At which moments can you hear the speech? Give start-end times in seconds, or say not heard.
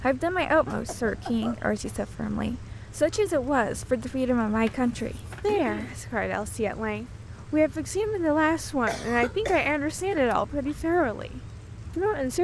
0.0-12.3.